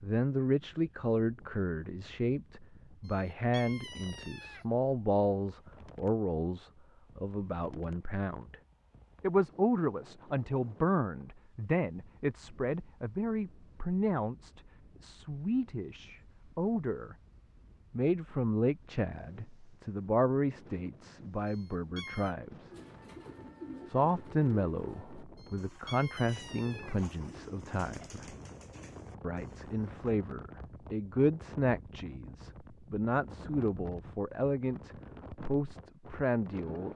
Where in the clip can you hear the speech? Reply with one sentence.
The speech can be heard from 0.0 to 8.6 s, from 9.2 to 17.1 s, from 17.9 to 22.7 s, from 23.9 to 28.2 s and from 29.2 to 36.9 s.